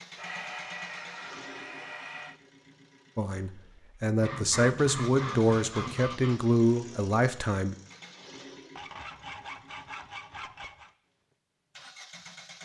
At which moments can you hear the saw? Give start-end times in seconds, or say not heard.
0.1-2.4, 4.2-6.4, 8.8-10.9.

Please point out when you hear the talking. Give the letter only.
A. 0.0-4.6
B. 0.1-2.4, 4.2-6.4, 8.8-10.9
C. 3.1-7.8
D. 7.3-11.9
C.